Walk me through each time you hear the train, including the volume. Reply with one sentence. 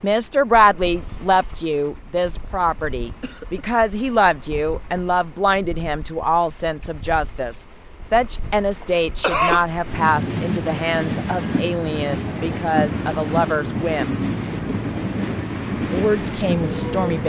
You can hear the train from 0.0 to 17.2 s, getting louder.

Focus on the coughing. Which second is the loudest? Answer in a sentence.
The loudest moment of the coughing is at 9 seconds.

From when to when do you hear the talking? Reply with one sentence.
You can hear the talking from 0.0 to 14.2 s and from 15.9 to 17.2 s.